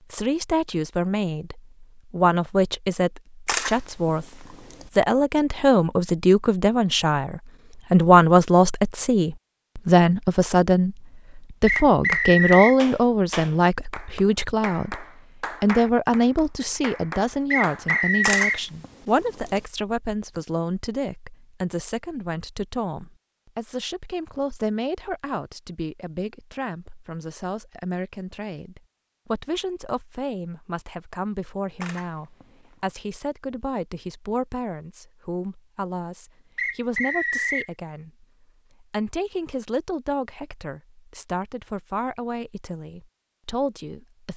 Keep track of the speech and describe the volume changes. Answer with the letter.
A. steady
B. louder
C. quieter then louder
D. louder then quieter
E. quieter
E.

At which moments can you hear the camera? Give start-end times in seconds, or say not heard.
3.5-4.8, 18.2-19.6, 31.8-32.8.